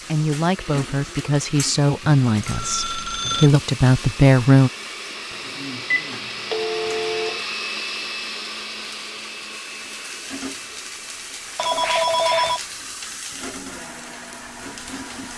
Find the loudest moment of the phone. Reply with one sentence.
The loudest moment of the phone is at 12 seconds.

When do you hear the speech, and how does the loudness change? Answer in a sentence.
You can hear the speech from 0.1 to 4.7 s, getting louder.